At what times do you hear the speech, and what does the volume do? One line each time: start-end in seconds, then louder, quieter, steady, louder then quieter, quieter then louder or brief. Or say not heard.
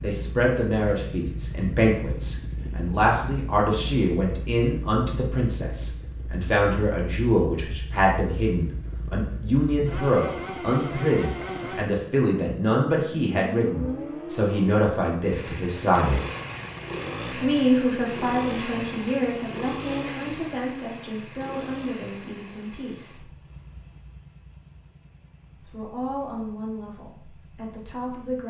0.0-16.2 steady
17.4-23.3 quieter
25.6-28.4 brief.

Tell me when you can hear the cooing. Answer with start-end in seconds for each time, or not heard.
not heard.